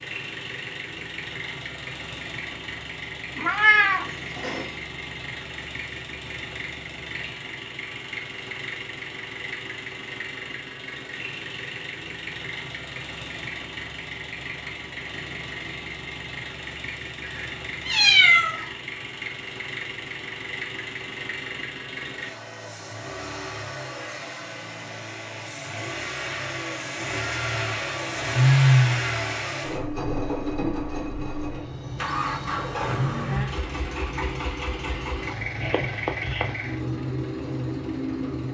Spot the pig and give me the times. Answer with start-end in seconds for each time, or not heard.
not heard.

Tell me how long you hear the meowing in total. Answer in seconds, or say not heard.
4 s.